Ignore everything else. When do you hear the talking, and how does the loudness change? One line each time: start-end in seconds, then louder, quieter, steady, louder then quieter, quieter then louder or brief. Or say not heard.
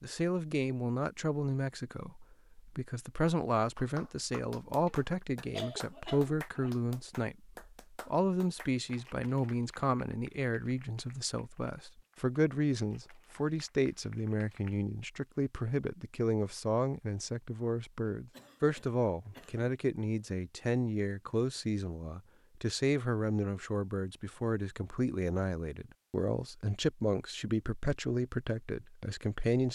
0.0-29.7 steady.